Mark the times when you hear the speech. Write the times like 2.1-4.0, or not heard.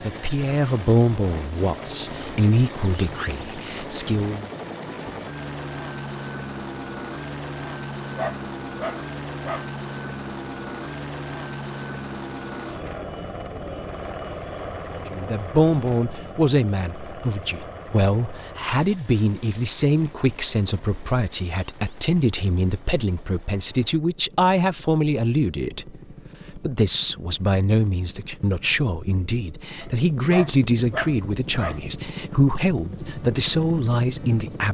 0.0-4.5, 15.1-34.7.